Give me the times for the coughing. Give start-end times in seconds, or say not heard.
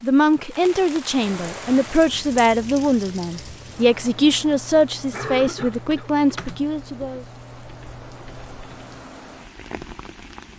5.1-6.1.